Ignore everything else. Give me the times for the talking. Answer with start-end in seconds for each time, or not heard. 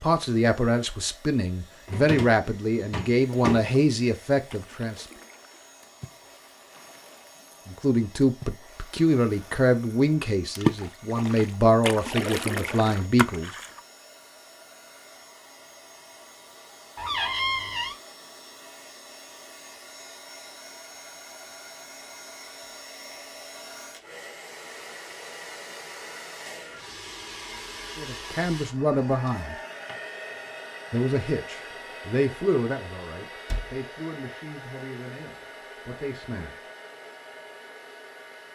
0.0-5.0, 7.7-13.6, 27.9-29.6, 30.9-36.6.